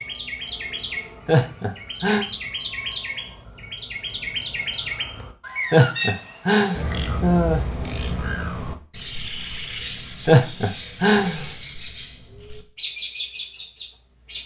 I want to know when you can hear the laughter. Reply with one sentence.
The laughter can be heard from 1.2 to 2.2 s, from 5.7 to 7.7 s and from 10.2 to 11.4 s.